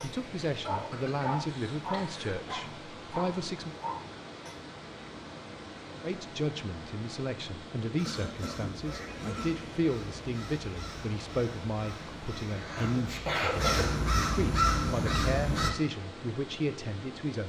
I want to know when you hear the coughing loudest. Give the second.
13 s.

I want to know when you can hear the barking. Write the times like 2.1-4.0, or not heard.
0.0-4.5.